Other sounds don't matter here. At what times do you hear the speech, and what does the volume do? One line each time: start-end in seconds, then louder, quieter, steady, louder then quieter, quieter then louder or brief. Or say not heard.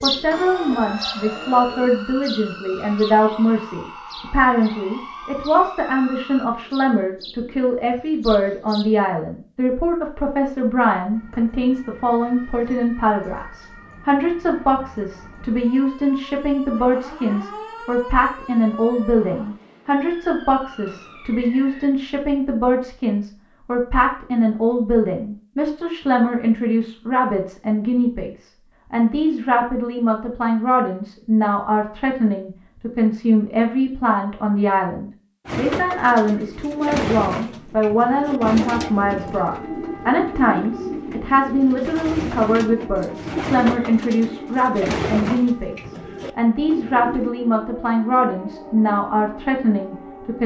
0.0-50.4 steady.